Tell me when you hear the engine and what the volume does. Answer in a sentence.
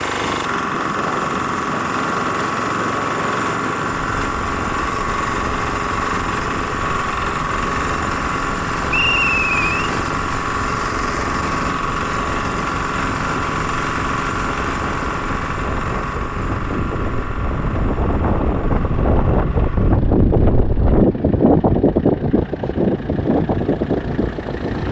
The engine can be heard from 0.0 to 24.8 s, getting quieter.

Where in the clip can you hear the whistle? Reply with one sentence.
The whistle can be heard from 8.9 to 9.9 s.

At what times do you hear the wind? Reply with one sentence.
You can hear the wind from 0.1 to 24.8 s.